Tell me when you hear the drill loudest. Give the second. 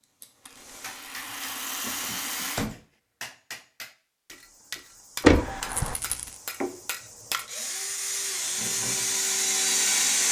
10 s.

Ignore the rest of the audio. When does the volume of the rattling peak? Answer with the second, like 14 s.
2 s.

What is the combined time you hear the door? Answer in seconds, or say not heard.
2 s.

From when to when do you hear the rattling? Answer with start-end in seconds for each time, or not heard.
0.5-2.7, 5.7-6.4.